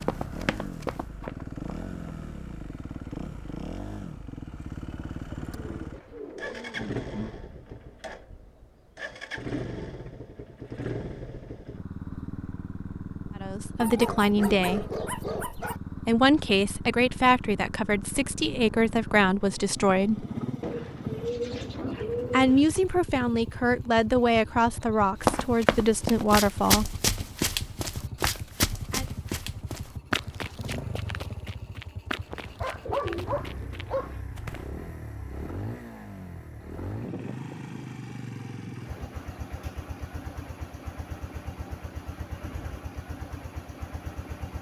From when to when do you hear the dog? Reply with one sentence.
The dog can be heard from 13.8 to 15.8 s and from 32.6 to 34.2 s.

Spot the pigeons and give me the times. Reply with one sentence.
You can hear the pigeons from 5.3 to 7.4 s, from 20.6 to 22.6 s and from 32.2 to 33.9 s.